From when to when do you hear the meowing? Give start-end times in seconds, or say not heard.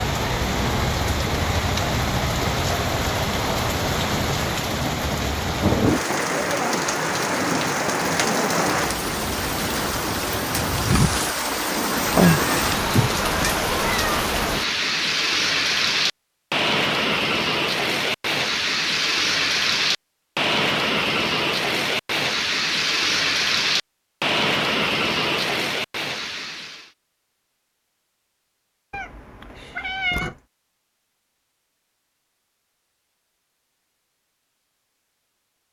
12.2-14.3, 28.9-30.4.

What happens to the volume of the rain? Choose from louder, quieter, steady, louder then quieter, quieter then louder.
steady.